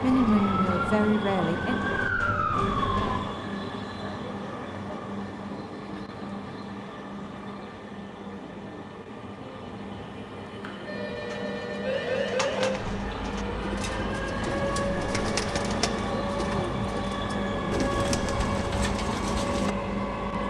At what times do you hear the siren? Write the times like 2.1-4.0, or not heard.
0.0-3.2, 11.8-20.4.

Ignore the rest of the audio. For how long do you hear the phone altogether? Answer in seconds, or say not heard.
2 s.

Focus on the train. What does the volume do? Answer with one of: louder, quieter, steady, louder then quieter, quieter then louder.
quieter then louder.